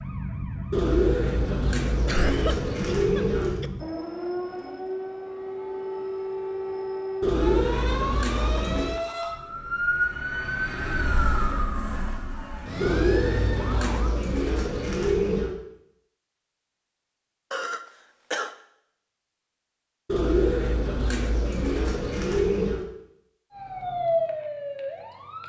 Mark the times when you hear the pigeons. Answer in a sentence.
You can hear the pigeons from 0.7 to 3.6 s, from 7.2 to 9.0 s, from 12.8 to 15.5 s and from 20.1 to 22.9 s.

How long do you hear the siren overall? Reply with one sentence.
The siren can be heard for 16 seconds in total.